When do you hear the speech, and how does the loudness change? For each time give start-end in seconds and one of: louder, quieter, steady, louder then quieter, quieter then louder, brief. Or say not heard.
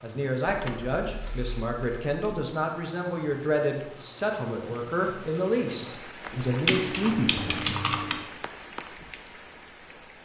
0.0-7.6 steady.